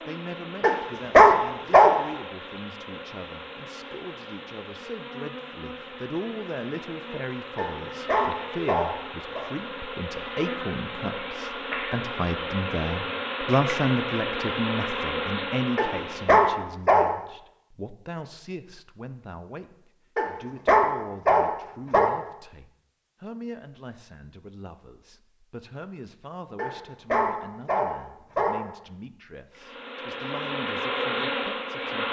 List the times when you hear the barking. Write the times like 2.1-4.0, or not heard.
0.6-2.0, 7.5-9.4, 15.8-17.1, 20.1-22.1, 26.6-28.6.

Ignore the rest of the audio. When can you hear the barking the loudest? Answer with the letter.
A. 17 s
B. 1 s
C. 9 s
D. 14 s
B.